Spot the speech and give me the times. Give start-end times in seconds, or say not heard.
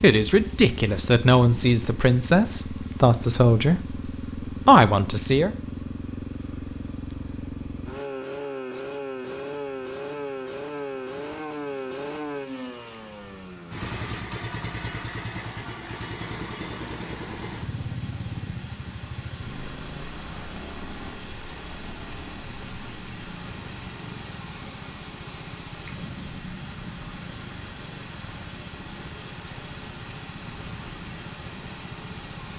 0.0-5.5.